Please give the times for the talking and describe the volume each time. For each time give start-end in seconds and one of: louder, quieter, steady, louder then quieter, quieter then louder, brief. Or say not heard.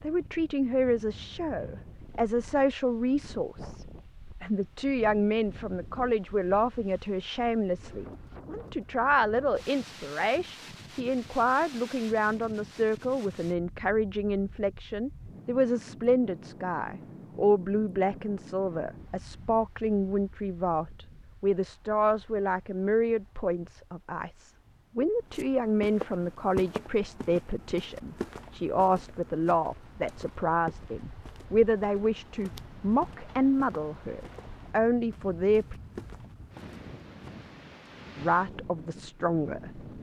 0.0-35.8 steady
38.1-39.9 brief.